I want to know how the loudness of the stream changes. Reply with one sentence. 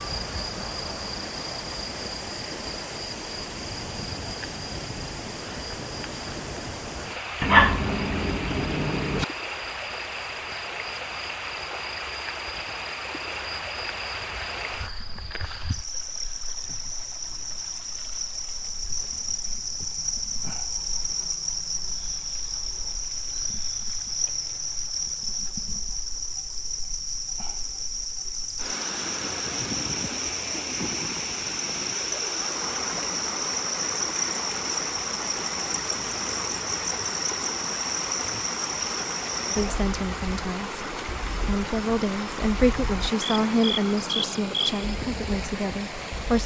The loudness of the stream goes down, then up.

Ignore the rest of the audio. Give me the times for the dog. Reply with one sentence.
The dog can be heard from 7.4 to 9.2 s.